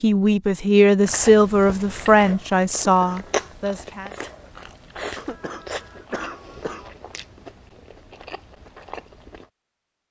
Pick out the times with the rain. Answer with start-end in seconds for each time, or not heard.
not heard.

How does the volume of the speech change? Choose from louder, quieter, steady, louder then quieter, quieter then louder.
quieter.